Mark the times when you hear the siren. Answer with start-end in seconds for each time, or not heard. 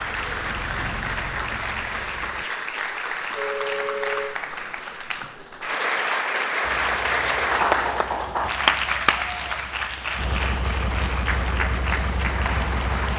not heard.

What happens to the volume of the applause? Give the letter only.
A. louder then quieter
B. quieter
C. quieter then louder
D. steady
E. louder
A.